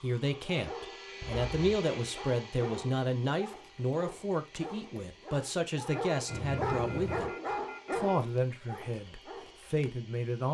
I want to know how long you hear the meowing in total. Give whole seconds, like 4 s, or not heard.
2 s.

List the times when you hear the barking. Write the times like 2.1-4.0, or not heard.
0.3-9.9.